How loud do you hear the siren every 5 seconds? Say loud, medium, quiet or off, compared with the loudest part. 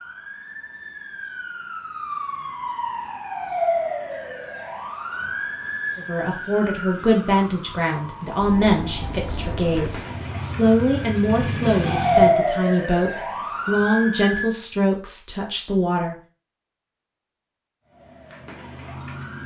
medium, medium, loud, quiet.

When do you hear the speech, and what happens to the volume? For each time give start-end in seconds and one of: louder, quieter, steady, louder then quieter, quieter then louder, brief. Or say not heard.
6.0-16.1 steady.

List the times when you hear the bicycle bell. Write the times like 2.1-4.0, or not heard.
not heard.